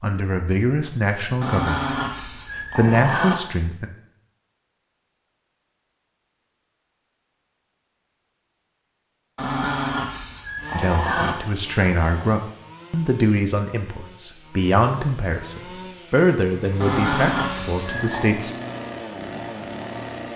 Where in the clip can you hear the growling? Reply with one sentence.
The growling can be heard from 1.4 to 3.4 s, from 9.3 to 11.3 s and from 16.8 to 18.4 s.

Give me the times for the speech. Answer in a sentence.
You can hear the speech from 0.0 to 1.9 s, from 2.8 to 3.9 s and from 10.7 to 18.6 s.